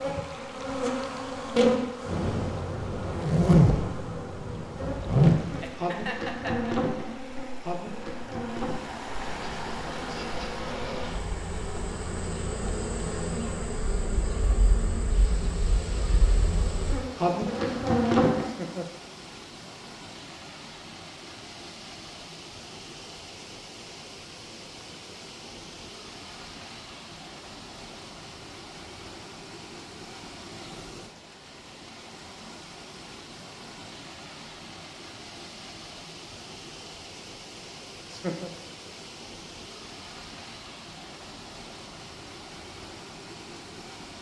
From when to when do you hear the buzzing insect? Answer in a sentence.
The buzzing insect can be heard from 0.0 to 18.5 s.